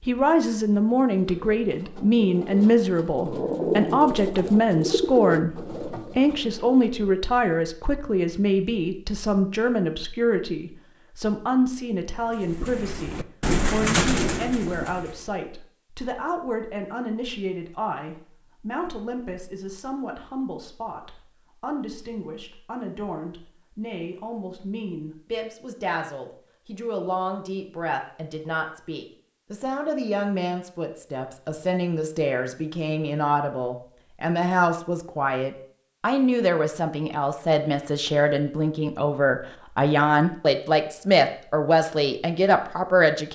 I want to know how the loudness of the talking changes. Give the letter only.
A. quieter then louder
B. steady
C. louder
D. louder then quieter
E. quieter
A.